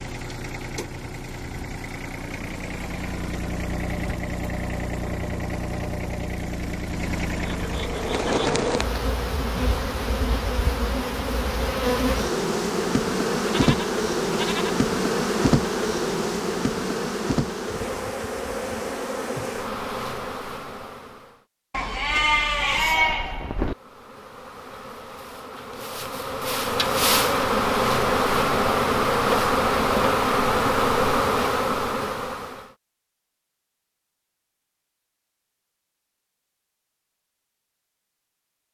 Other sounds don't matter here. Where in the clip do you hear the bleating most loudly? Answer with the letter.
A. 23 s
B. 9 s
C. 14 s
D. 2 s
A.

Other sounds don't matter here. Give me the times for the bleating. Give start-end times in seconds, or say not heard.
13.4-14.8, 21.7-23.8.